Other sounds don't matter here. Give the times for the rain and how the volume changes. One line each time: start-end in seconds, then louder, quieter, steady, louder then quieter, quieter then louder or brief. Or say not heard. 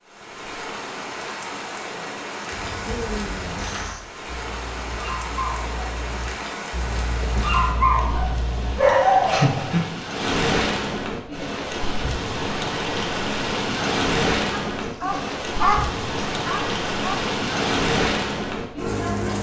0.1-19.3 louder.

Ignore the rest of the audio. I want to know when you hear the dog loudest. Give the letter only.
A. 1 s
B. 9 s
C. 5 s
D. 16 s
B.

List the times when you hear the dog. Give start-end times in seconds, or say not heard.
2.5-9.8, 14.7-17.2.